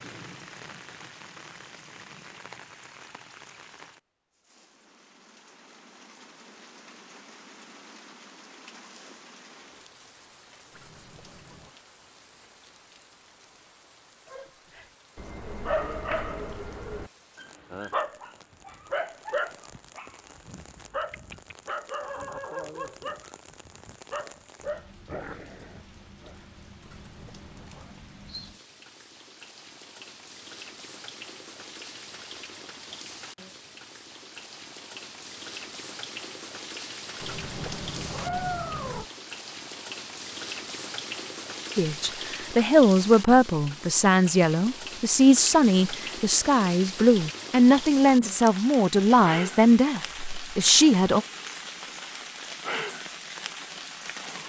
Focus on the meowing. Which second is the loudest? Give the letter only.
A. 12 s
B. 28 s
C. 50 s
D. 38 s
D.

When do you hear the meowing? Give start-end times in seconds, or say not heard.
10.7-11.8, 26.8-27.9, 37.2-39.0.